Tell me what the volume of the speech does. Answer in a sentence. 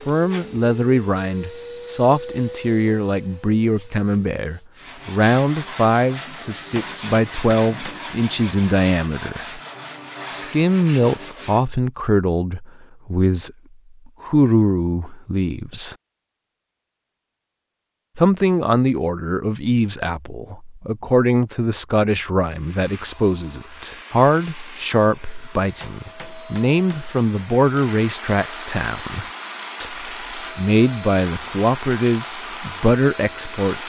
The volume of the speech stays about the same.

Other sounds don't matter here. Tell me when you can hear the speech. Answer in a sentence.
The speech can be heard from 0.1 to 9.6 s, from 10.3 to 15.9 s and from 18.1 to 33.8 s.